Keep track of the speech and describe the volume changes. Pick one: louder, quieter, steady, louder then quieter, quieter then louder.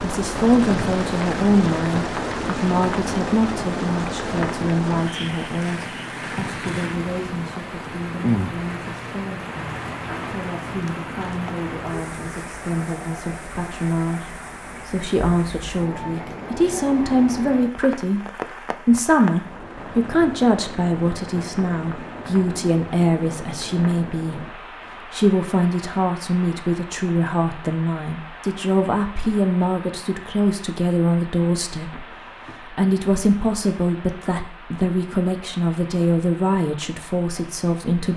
quieter then louder.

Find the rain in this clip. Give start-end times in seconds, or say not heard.
0.0-38.1.